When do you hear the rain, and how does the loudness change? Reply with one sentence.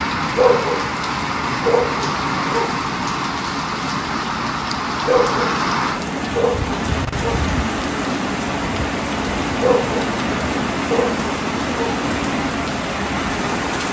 The rain can be heard from 0.0 to 13.8 s, at a steady volume.